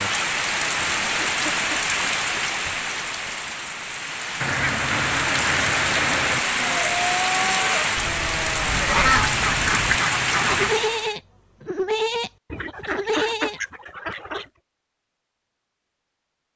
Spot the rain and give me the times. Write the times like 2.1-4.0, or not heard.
0.0-11.2.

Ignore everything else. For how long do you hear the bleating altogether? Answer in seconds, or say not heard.
7 s.